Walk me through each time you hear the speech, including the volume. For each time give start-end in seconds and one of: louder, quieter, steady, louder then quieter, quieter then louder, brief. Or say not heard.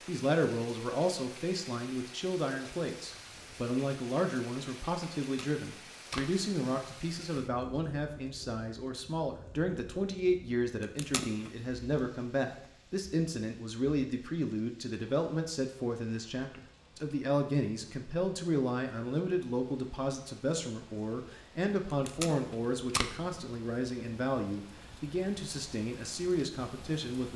0.1-27.3 steady.